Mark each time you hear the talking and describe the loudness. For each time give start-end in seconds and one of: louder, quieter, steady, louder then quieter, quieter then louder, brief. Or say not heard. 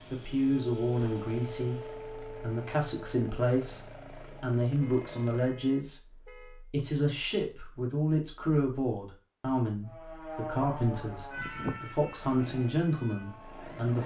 0.1-14.0 steady.